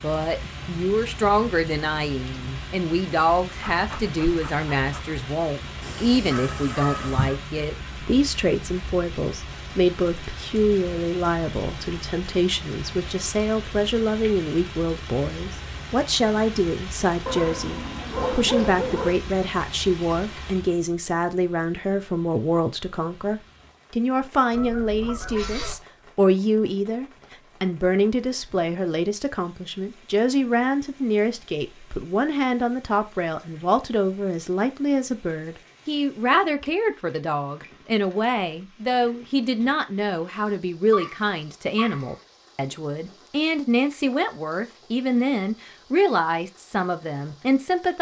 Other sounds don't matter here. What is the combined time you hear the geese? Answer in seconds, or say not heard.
3 s.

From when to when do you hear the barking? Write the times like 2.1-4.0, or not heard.
3.6-5.2, 17.2-19.2, 40.9-42.1.